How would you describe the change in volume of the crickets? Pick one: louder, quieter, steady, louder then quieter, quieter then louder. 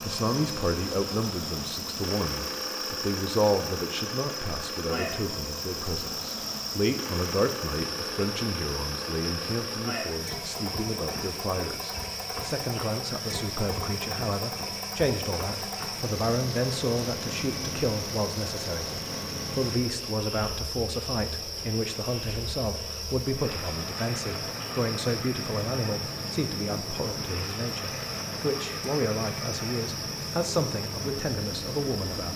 steady.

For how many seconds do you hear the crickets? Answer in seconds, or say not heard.
32 s.